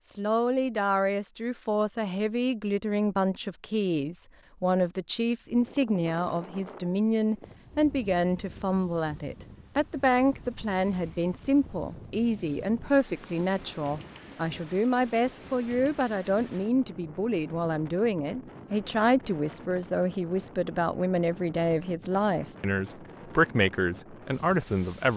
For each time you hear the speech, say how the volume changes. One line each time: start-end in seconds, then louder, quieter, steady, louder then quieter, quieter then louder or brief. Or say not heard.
0.1-25.1 steady.